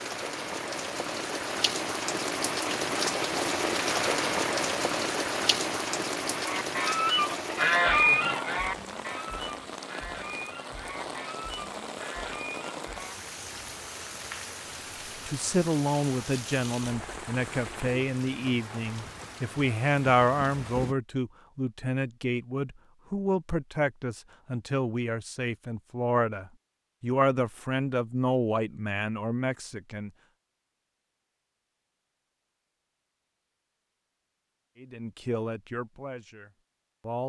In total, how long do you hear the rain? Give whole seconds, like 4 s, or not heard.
21 s.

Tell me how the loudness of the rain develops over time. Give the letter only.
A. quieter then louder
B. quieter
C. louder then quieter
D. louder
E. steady
B.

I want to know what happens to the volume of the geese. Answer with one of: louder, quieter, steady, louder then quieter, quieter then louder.
quieter.